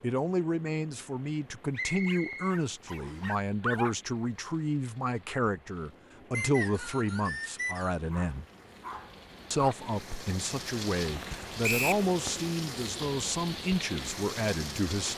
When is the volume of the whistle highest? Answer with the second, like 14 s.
12 s.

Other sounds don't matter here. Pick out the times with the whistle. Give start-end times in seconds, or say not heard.
1.8-3.2, 6.3-8.0, 11.6-12.1.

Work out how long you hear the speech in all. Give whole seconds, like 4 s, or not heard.
14 s.